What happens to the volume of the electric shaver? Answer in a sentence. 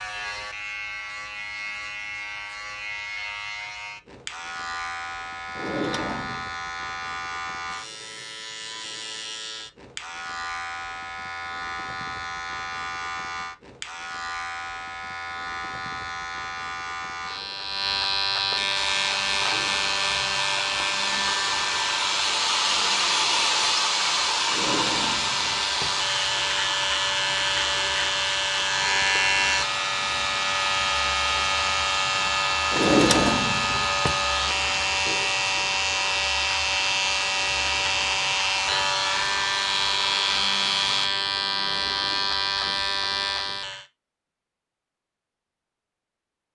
The loudness of the electric shaver goes up.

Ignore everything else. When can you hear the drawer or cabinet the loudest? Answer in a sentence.
The volume of the drawer or cabinet peaks at 33 seconds.